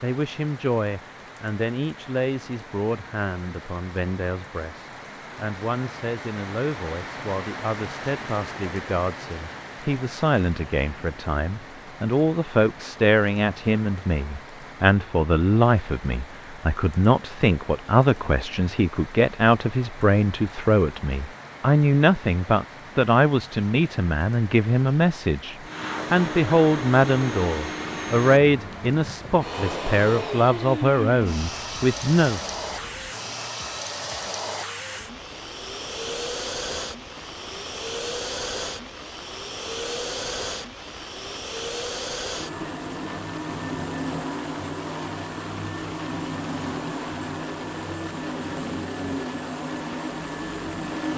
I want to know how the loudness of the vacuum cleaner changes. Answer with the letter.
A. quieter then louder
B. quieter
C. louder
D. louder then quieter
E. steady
E.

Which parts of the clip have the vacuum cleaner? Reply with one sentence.
The vacuum cleaner can be heard from 25.6 to 51.1 s.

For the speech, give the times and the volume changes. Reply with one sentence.
You can hear the speech from 0.0 to 32.4 s, getting louder.